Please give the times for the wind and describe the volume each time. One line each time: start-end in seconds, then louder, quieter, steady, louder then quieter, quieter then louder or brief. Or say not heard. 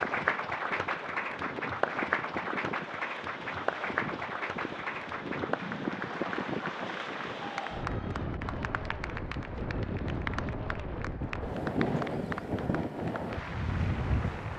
0.0-14.5 louder.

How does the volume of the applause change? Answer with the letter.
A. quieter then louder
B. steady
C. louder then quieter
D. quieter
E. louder
D.